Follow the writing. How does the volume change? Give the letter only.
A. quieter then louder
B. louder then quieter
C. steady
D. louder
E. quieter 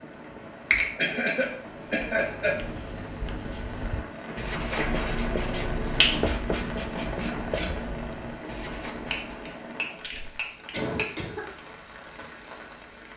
B.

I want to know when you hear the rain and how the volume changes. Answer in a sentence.
The rain can be heard from 0.0 to 13.1 s, getting louder then quieter.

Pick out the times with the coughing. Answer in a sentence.
The coughing can be heard from 0.9 to 2.5 s, from 4.6 to 5.1 s and from 10.7 to 11.4 s.